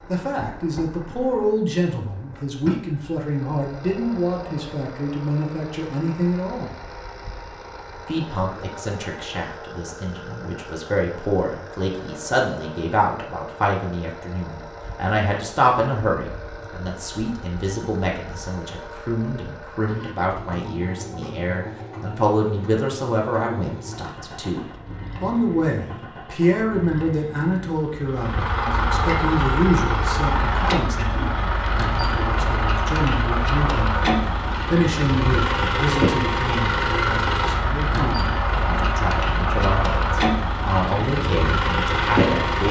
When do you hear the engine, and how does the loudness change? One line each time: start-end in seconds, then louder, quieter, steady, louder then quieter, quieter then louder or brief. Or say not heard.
0.0-42.6 louder.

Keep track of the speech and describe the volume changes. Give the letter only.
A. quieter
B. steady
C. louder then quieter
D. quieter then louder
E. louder
B.